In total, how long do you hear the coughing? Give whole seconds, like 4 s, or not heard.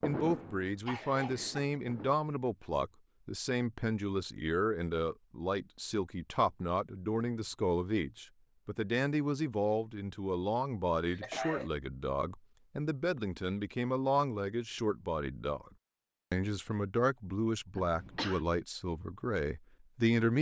2 s.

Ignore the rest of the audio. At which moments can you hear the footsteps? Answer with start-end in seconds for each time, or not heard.
not heard.